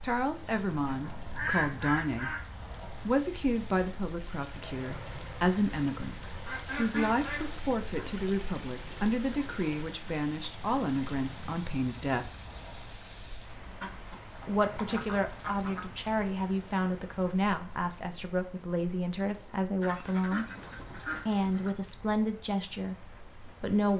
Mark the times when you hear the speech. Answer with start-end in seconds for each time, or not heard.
0.0-2.4, 3.0-12.3, 14.4-20.4, 21.2-23.9.